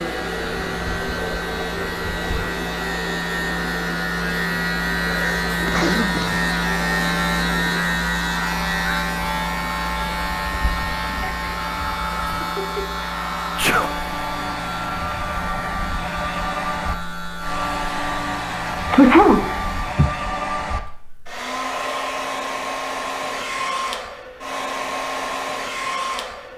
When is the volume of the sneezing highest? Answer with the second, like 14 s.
19 s.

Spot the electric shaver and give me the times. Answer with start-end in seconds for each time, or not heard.
0.0-20.0.